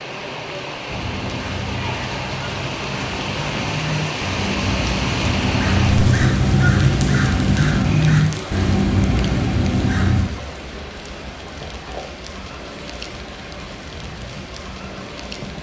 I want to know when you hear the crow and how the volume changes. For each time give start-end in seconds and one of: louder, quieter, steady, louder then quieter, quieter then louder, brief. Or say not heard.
0.8-10.2 louder.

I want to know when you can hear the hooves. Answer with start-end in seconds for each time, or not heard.
11.4-15.5.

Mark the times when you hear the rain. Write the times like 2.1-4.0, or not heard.
0.0-15.5.